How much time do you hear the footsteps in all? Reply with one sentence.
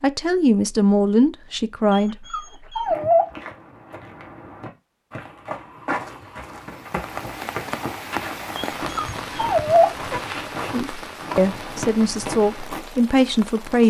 The footsteps can be heard for 10 seconds in total.